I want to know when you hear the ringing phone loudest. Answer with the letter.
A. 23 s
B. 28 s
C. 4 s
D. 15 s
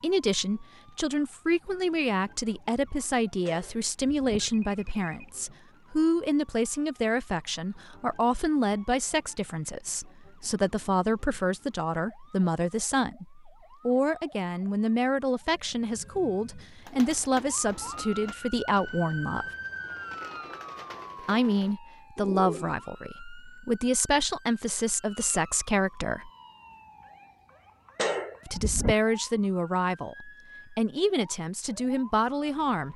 B.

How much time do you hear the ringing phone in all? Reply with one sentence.
The ringing phone can be heard for 3 seconds in total.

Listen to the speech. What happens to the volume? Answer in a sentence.
The volume of the speech stays about the same.